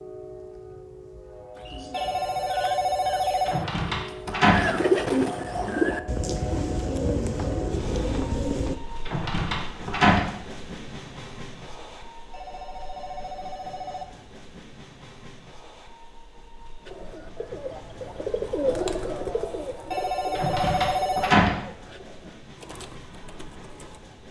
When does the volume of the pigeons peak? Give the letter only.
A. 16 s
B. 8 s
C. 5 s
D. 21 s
C.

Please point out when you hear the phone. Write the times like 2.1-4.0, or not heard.
1.9-3.6, 12.3-14.2, 19.9-21.4.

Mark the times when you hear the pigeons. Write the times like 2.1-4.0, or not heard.
1.6-8.8, 16.9-24.1.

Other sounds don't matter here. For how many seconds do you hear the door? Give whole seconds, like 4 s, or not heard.
4 s.